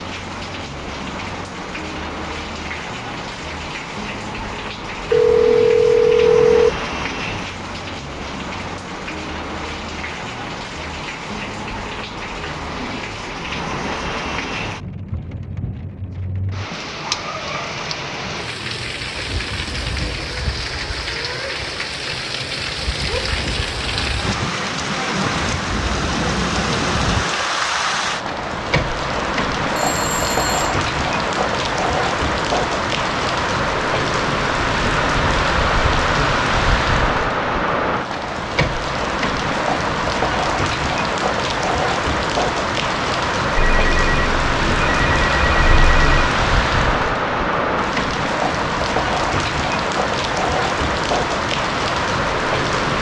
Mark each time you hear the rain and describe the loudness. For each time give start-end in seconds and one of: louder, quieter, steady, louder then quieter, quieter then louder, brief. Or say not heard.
0.0-52.9 louder.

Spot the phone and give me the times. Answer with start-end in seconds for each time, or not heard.
5.1-6.7, 29.8-30.7, 43.5-46.4.